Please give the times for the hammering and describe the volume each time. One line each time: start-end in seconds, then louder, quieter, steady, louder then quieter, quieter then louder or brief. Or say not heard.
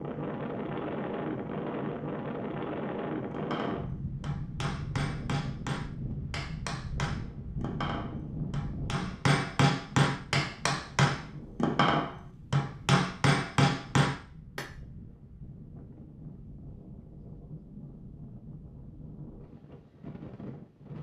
3.3-14.7 louder.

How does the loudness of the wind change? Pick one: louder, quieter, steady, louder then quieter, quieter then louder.
quieter.